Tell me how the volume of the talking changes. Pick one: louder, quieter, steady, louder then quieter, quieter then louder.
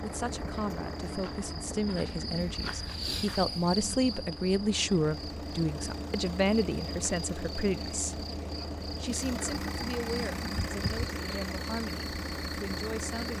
louder then quieter.